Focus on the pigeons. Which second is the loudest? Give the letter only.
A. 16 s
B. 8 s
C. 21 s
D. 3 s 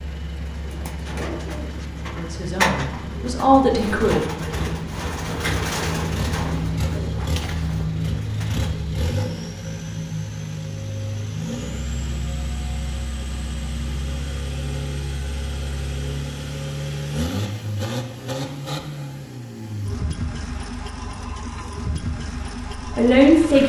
D.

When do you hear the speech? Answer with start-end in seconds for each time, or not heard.
2.0-4.2, 22.9-23.6.